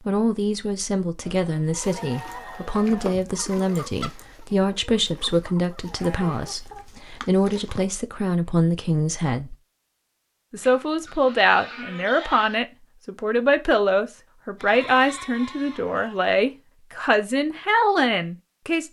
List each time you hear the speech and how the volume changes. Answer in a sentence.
You can hear the speech from 0.1 to 9.6 s, at a steady volume; and from 10.5 to 18.8 s, at a steady volume.